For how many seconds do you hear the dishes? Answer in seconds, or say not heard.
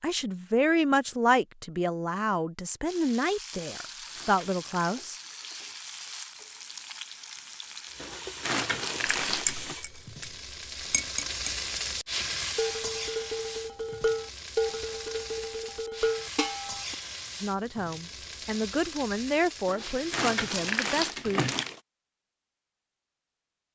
6 s.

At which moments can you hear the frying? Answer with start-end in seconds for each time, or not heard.
2.9-20.8.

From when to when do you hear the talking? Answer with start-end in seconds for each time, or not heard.
0.0-5.2, 17.4-21.4.